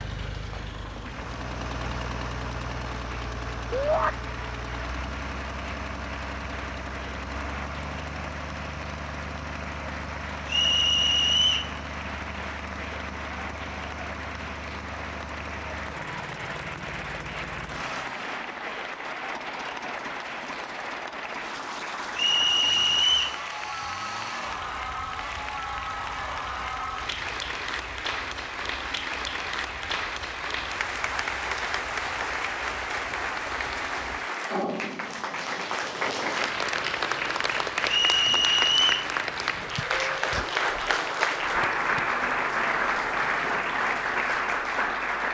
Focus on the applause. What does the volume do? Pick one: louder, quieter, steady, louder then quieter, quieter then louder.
louder.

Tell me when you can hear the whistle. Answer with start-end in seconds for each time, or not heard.
10.4-11.7, 22.1-23.4, 37.9-39.1.